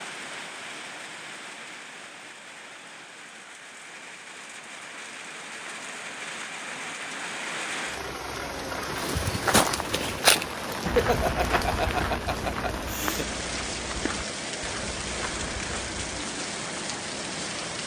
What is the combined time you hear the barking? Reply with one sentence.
The barking can't be heard in this clip.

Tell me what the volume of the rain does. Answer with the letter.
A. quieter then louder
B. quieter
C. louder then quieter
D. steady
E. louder
E.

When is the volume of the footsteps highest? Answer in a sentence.
The loudest moment of the footsteps is at 10 seconds.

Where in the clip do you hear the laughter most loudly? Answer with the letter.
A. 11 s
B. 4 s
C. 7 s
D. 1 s
A.